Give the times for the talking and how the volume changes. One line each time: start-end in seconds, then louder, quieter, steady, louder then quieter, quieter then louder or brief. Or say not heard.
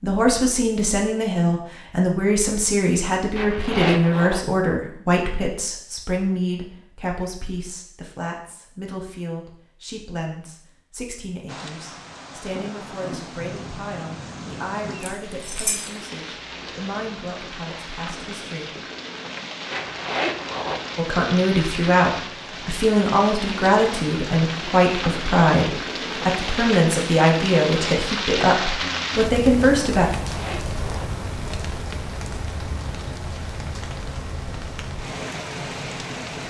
0.0-18.8 quieter
20.9-30.1 steady.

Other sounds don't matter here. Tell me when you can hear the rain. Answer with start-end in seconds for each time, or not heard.
11.4-36.4.